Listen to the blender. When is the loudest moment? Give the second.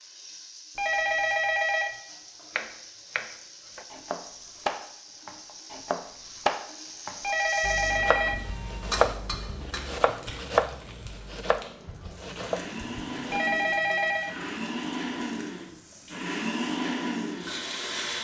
17 s.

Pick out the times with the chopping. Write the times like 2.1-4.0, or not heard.
2.5-13.4.